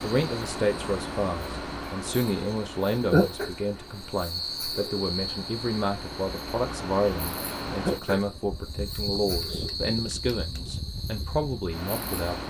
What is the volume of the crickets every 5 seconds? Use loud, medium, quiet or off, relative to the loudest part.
loud, loud, medium.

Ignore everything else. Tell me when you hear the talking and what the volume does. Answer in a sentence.
The talking can be heard from 0.0 to 12.4 s, at a steady volume.